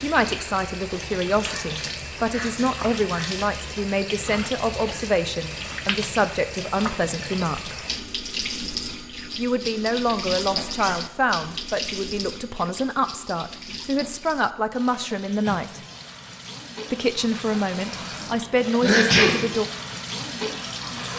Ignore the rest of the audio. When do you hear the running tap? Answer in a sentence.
You can hear the running tap from 0.0 to 21.1 s.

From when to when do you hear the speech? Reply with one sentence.
You can hear the speech from 0.0 to 7.8 s, from 9.3 to 15.8 s and from 16.9 to 19.6 s.